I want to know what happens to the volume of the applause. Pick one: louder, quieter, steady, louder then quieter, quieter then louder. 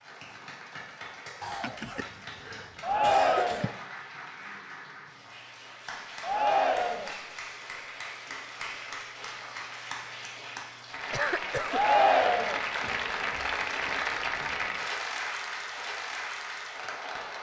louder.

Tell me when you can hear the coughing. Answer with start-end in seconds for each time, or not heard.
1.4-3.8, 11.1-11.8.